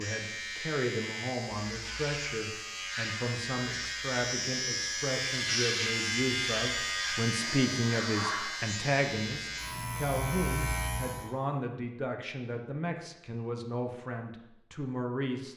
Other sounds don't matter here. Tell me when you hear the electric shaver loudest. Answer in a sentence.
The volume of the electric shaver peaks at 6 seconds.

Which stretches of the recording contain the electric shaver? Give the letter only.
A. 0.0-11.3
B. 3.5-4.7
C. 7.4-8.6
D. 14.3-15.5
A.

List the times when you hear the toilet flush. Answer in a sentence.
The toilet flush can be heard from 7.4 to 8.6 s.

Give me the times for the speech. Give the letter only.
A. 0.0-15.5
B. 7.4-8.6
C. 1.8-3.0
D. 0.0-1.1
A.